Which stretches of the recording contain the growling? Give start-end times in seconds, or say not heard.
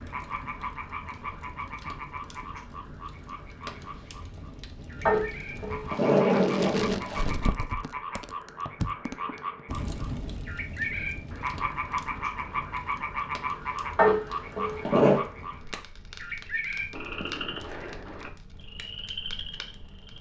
5.0-7.3, 13.9-15.2.